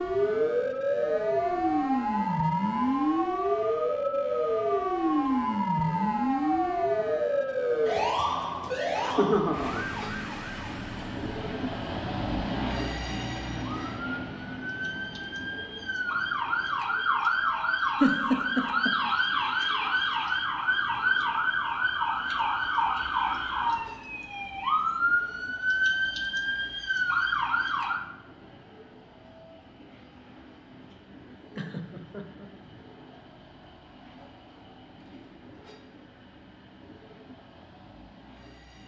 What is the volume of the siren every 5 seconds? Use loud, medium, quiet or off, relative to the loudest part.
loud, loud, quiet, loud, loud, loud, off, off.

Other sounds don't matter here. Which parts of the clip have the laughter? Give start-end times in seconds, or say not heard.
8.9-9.8, 18.0-18.9, 31.6-32.5.